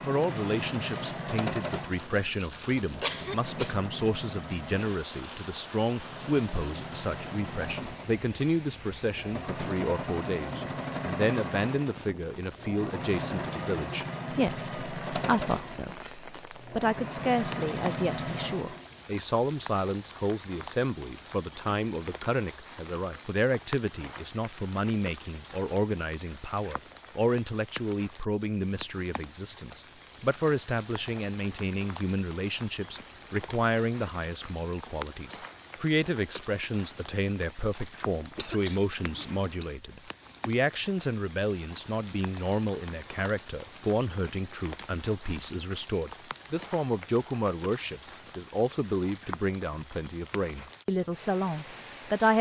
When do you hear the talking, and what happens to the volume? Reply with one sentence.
The talking can be heard from 0.1 to 52.3 s, at a steady volume.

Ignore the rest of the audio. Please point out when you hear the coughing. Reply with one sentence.
The coughing can be heard from 3.0 to 3.8 s and from 38.4 to 39.8 s.